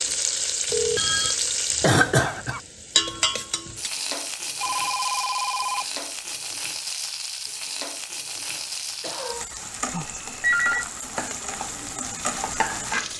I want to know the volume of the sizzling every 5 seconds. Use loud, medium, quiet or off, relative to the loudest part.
loud, medium, loud.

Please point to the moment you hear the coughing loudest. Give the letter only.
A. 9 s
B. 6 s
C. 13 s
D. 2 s
D.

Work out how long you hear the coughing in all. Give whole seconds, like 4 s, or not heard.
2 s.